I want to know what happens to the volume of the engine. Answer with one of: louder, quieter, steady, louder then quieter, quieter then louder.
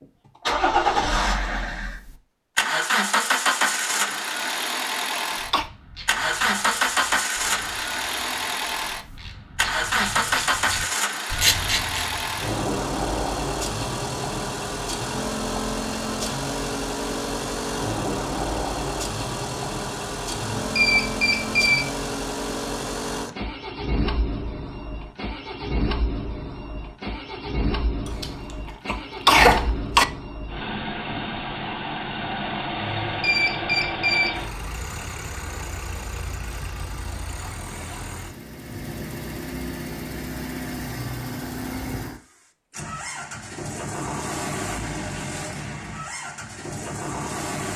quieter.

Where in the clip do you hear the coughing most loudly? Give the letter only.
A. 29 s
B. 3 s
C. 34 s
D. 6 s
A.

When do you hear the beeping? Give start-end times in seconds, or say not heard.
20.3-21.9, 32.8-34.4.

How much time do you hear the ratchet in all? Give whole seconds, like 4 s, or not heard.
7 s.